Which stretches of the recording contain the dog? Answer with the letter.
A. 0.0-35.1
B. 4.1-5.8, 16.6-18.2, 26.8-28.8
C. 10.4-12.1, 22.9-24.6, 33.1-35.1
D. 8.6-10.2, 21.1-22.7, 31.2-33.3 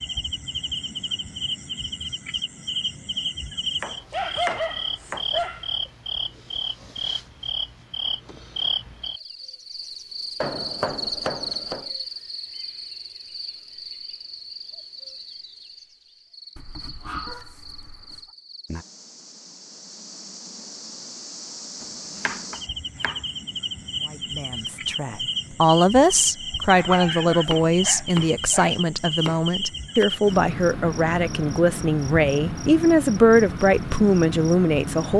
B.